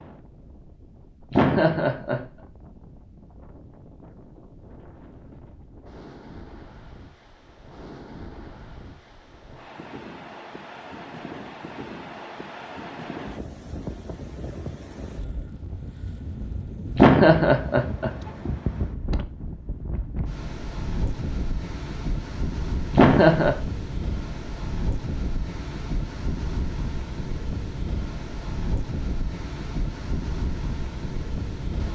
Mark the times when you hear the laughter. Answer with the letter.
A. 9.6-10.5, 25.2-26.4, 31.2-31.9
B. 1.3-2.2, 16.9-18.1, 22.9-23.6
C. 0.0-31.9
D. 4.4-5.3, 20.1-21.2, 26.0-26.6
B.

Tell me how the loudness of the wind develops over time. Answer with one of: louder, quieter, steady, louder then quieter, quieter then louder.
louder.